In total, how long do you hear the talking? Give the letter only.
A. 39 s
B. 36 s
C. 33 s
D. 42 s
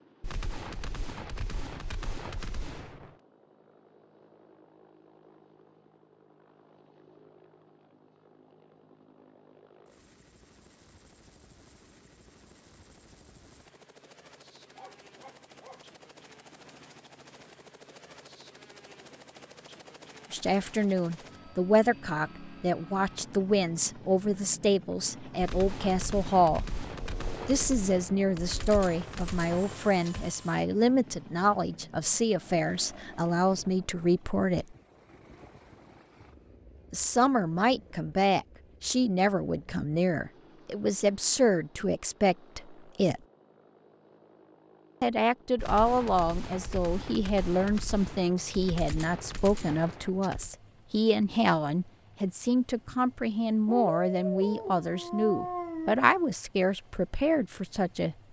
C.